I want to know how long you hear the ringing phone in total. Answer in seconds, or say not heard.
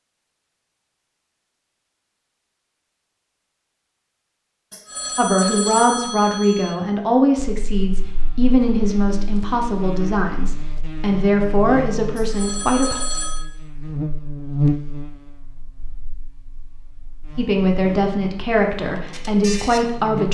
3 s.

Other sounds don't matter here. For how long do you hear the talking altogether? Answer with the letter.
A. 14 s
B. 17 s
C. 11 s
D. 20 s
C.